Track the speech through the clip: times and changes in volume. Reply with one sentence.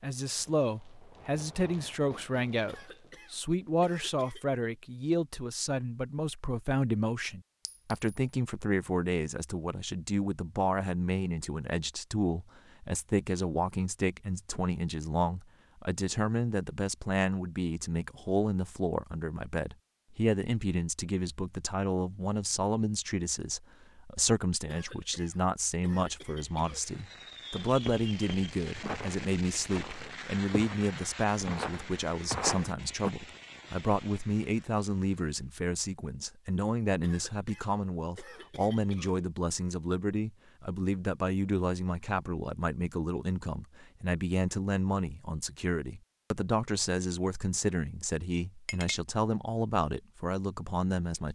The speech can be heard from 0.0 to 51.3 s, at a steady volume.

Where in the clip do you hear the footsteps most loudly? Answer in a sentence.
The loudest moment of the footsteps is at 32 seconds.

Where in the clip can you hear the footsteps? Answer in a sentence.
The footsteps can be heard from 27.6 to 33.1 s.